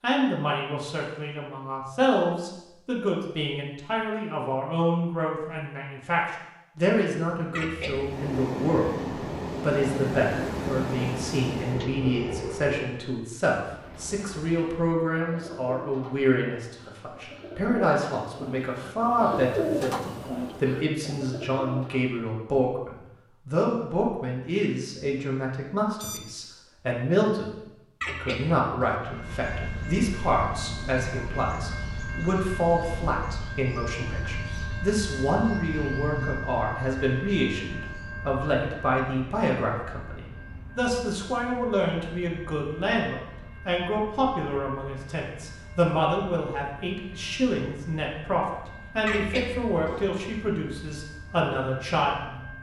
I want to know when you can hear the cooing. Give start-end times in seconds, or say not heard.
13.6-22.1.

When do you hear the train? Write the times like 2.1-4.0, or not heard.
7.9-13.1, 29.0-52.5.